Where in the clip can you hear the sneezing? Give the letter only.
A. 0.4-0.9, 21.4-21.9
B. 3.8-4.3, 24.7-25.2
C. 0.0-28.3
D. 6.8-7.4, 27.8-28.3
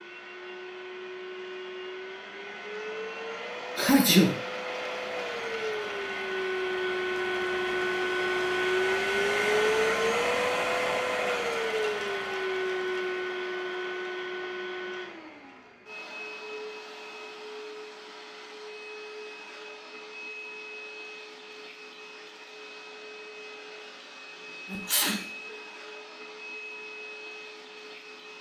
B.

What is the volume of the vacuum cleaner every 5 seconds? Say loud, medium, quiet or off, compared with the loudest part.
medium, loud, loud, quiet, quiet, quiet.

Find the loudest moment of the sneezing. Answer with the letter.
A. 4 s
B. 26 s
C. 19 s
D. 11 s
A.